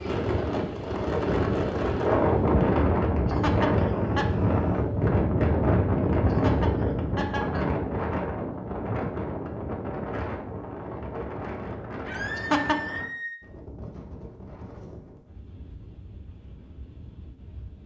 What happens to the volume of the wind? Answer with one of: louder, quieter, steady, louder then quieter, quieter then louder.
quieter.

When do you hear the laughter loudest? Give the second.
13 s.